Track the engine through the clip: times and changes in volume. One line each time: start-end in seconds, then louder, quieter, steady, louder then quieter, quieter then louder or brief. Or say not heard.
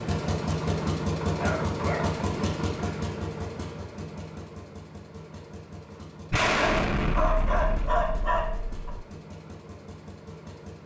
0.0-10.8 quieter.